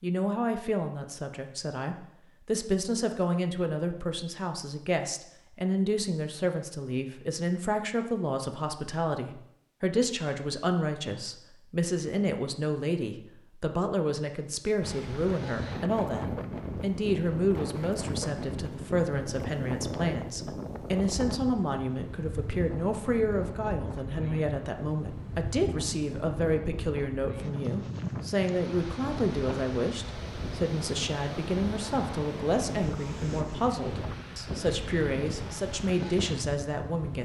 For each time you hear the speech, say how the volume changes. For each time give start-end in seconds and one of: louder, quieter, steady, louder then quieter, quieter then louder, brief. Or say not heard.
0.0-37.2 steady.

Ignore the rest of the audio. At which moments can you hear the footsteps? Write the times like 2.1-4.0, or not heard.
not heard.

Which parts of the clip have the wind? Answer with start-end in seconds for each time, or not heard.
14.8-37.2.